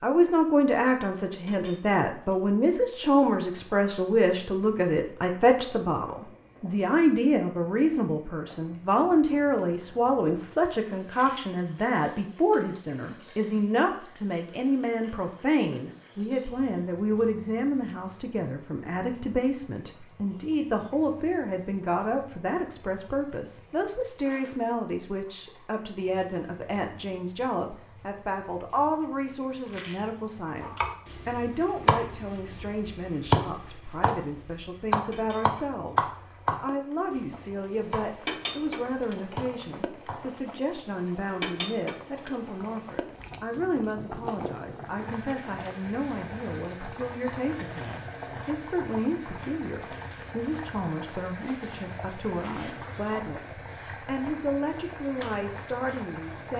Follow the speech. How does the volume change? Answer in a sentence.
The loudness of the speech goes down.